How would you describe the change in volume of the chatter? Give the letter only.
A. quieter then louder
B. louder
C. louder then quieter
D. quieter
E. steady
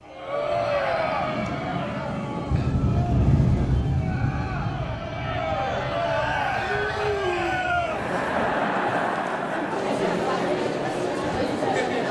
A.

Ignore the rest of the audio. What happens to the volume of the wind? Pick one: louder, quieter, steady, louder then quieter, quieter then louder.
louder then quieter.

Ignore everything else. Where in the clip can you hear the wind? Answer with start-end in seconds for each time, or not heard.
0.0-8.4.